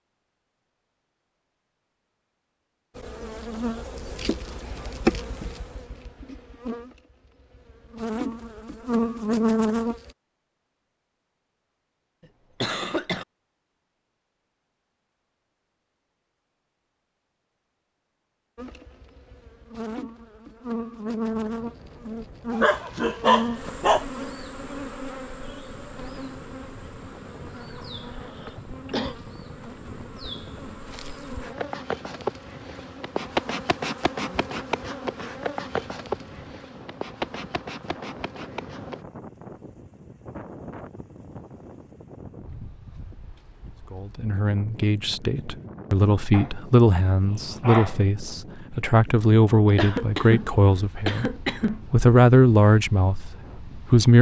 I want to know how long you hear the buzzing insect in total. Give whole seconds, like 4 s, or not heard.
28 s.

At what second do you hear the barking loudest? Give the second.
23 s.